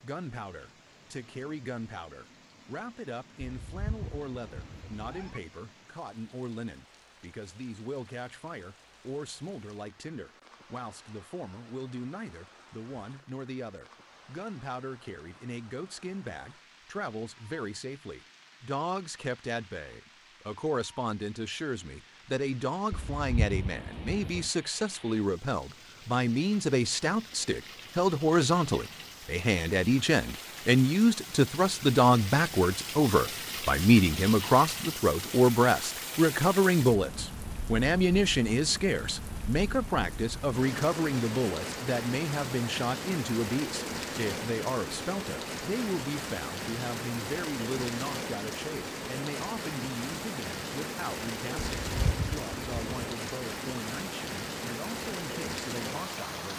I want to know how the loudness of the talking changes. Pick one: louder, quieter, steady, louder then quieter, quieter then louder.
louder then quieter.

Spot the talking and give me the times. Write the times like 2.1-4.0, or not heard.
0.0-56.5.